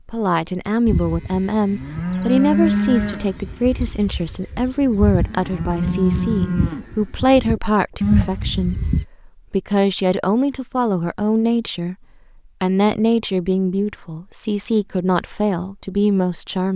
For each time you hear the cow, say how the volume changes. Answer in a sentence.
The cow can be heard from 0.8 to 9.1 s, getting quieter then louder.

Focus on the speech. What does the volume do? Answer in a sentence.
The loudness of the speech stays about the same.